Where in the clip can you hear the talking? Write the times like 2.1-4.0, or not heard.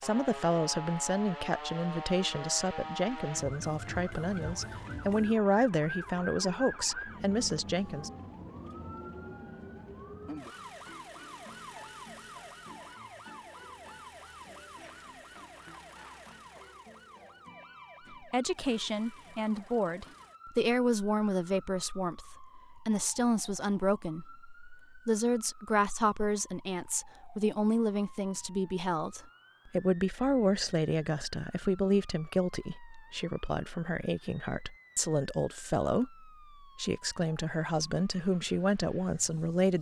0.0-8.1, 18.1-39.7.